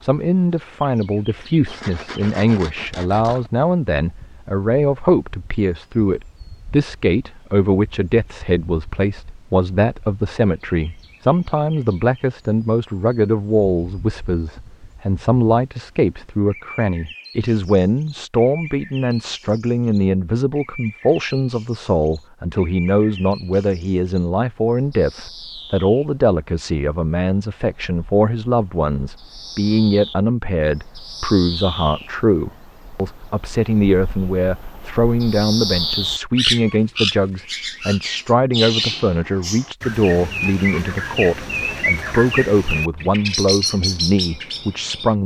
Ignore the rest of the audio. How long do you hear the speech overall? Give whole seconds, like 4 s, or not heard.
45 s.